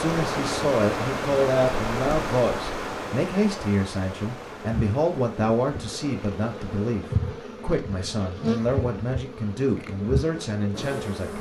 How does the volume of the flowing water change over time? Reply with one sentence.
The volume of the flowing water goes down.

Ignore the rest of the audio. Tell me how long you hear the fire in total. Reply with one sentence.
The fire can't be heard in this clip.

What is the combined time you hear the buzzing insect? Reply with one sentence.
The buzzing insect can be heard for 7 seconds in total.